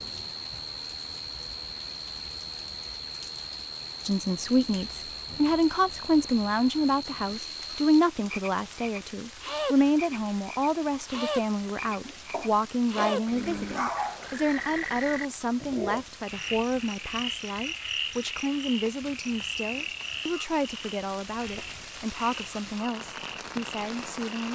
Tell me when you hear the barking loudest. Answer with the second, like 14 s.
14 s.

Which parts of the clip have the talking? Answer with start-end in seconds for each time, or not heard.
4.0-24.5.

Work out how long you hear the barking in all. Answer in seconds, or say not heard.
2 s.